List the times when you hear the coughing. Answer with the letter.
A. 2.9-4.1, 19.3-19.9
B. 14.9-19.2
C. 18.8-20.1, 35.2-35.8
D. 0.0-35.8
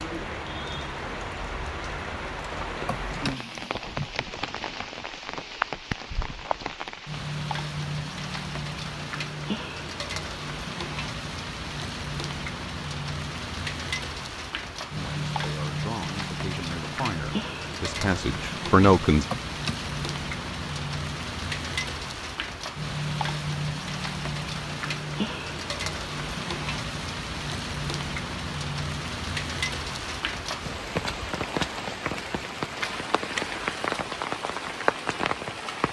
A.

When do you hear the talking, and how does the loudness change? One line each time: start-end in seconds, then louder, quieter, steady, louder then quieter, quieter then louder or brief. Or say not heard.
14.9-19.2 louder.